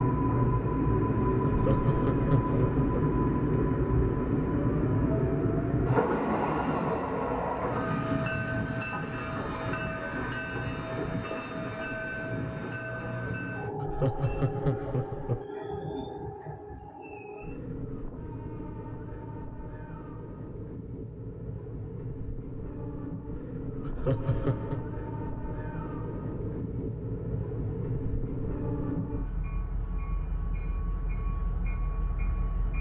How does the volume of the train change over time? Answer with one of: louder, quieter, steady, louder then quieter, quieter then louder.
quieter.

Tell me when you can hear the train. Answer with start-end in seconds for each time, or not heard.
0.0-32.7.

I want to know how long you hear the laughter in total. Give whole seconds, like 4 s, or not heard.
4 s.